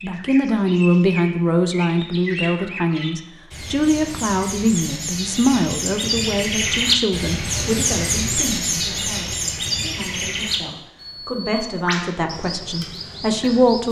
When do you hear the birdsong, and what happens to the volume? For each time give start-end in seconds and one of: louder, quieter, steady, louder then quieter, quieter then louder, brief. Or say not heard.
0.0-13.8 louder then quieter.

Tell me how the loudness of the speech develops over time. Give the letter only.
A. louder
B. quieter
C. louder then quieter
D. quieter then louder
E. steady
D.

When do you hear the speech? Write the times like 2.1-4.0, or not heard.
0.0-13.8.